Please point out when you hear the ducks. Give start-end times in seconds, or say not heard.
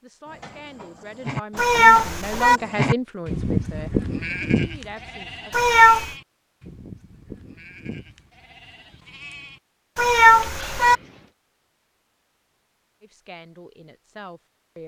not heard.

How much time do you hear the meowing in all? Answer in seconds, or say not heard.
3 s.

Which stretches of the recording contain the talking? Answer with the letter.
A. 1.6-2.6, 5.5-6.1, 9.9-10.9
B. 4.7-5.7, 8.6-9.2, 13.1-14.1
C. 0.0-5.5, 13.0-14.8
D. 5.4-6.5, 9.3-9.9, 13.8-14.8
C.